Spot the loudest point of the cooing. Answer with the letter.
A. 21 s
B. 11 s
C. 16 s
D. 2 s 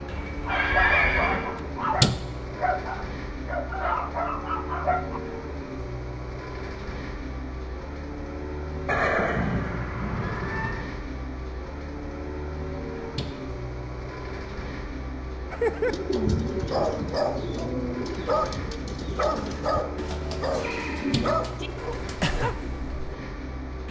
C.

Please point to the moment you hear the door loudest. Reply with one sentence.
The volume of the door peaks at 2 seconds.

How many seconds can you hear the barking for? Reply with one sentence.
You can hear the barking for 13 seconds altogether.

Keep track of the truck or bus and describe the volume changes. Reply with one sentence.
The volume of the truck or bus stays about the same.